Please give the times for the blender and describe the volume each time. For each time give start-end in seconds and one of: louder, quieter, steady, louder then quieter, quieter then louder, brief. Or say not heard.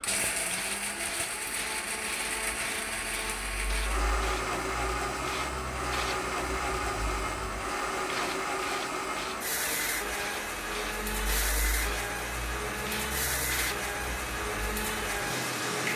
0.0-15.9 steady.